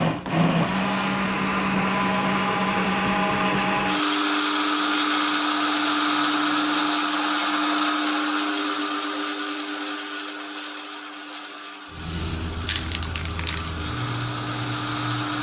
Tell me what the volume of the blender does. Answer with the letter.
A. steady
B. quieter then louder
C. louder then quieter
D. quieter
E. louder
D.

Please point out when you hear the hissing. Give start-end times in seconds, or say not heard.
11.9-15.3.